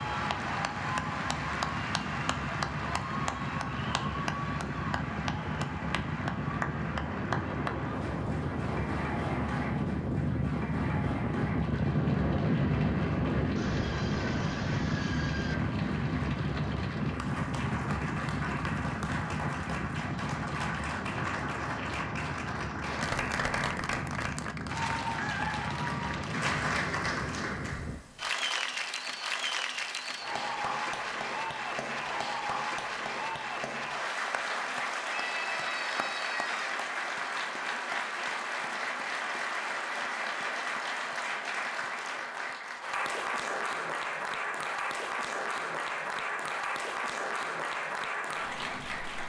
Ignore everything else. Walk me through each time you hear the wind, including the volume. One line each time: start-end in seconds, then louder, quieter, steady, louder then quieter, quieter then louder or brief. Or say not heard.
0.0-28.0 louder then quieter.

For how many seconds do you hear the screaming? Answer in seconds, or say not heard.
4 s.